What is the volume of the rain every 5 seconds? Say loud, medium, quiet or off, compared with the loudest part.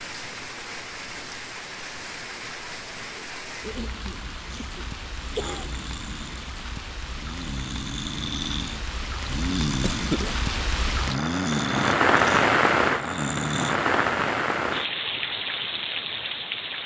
quiet, quiet, loud, medium.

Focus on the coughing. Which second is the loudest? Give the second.
10 s.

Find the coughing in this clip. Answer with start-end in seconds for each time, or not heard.
3.6-5.7, 9.7-10.3.